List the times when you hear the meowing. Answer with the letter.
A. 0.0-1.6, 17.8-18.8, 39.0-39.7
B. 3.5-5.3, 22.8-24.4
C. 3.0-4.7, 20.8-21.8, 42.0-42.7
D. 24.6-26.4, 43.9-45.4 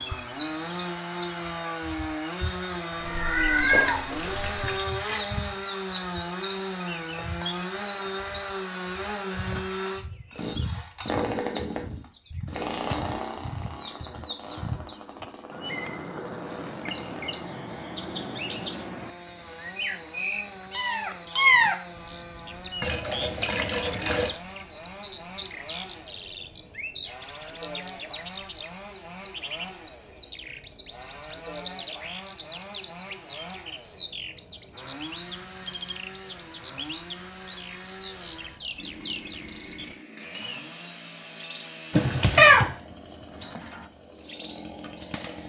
C.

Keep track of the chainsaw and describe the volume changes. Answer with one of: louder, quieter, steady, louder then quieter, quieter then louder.
quieter.